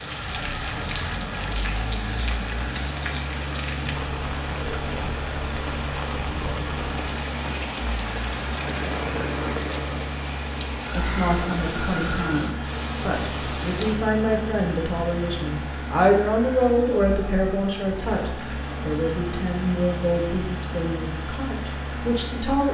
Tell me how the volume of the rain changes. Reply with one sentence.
The volume of the rain stays about the same.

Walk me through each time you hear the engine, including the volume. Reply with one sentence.
The engine can be heard from 0.0 to 22.6 s, at a steady volume.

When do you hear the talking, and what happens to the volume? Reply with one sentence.
The talking can be heard from 10.9 to 22.6 s, getting louder then quieter.